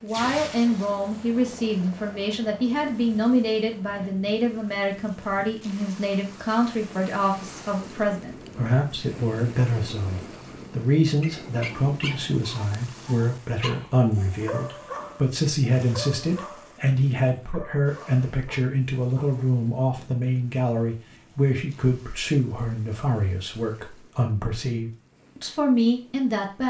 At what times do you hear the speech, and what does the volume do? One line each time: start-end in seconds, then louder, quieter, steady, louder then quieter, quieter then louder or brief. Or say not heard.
0.0-26.6 steady.